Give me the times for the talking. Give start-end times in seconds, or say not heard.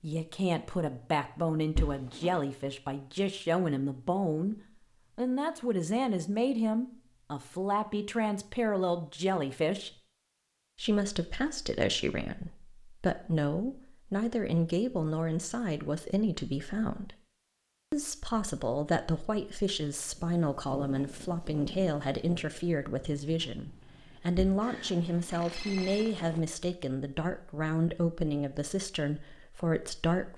0.0-4.5, 5.2-9.9, 10.8-17.1, 17.9-30.3.